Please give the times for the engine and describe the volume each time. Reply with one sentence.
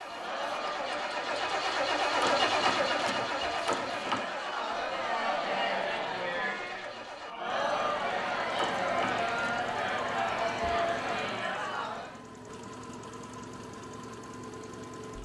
You can hear the engine from 0.0 to 15.2 s, getting quieter.